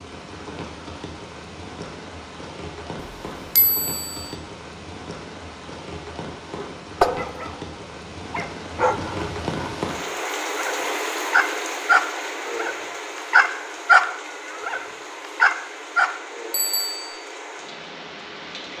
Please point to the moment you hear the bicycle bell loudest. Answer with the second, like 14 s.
17 s.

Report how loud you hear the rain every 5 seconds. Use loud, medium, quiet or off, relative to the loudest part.
medium, loud, loud, medium.